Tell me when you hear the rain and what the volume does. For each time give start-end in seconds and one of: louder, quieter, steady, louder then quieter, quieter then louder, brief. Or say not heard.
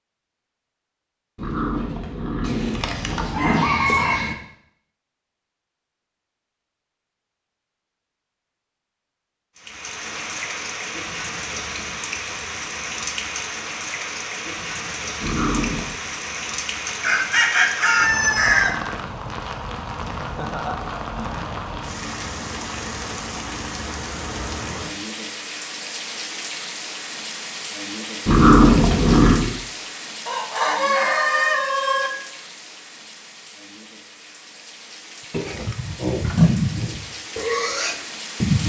9.6-38.6 quieter.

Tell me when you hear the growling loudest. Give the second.
29 s.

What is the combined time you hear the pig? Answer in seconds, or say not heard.
3 s.